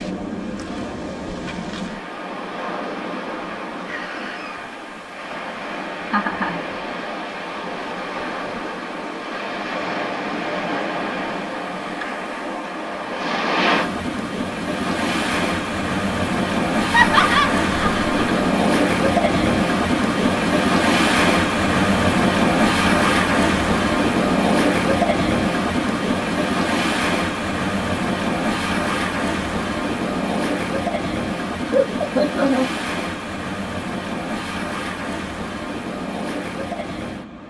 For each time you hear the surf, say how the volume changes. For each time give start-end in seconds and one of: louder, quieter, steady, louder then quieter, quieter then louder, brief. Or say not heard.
0.0-37.4 louder then quieter.